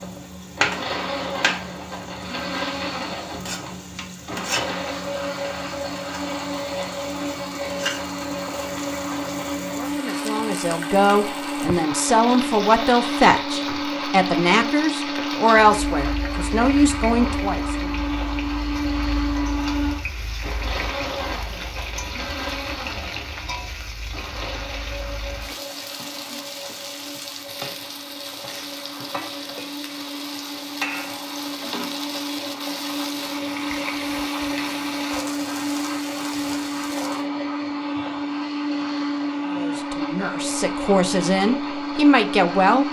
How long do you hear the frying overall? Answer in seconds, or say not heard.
37 s.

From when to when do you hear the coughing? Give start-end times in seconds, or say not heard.
not heard.